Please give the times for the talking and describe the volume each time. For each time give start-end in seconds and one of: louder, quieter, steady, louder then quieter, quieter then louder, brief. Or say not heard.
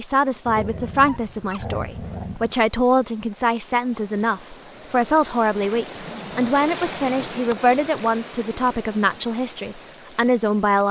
0.0-10.8 steady.